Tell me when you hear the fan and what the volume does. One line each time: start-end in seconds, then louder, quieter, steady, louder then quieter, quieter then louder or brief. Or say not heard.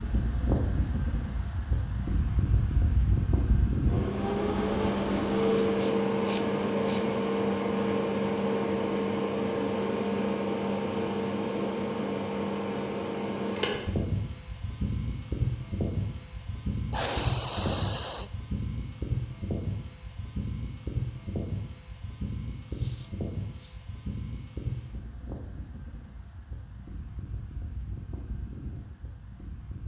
0.0-29.8 quieter.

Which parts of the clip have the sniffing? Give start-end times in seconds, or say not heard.
5.5-7.0, 16.9-18.3, 22.6-23.9.